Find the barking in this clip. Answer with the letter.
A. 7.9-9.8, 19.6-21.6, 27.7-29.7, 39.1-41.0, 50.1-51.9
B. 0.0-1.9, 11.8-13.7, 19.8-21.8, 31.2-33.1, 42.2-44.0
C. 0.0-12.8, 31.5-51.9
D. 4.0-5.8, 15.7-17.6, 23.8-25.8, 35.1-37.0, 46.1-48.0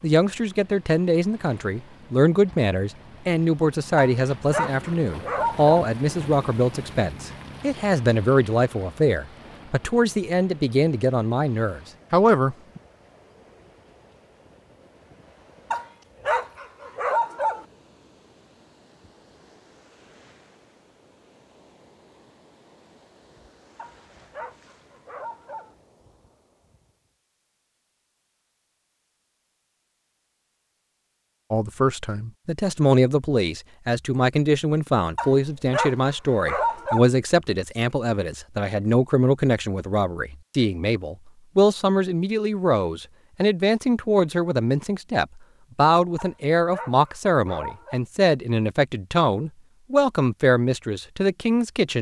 D.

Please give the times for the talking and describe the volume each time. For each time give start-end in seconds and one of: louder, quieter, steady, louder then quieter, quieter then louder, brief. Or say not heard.
0.0-12.8 steady
31.5-51.9 steady.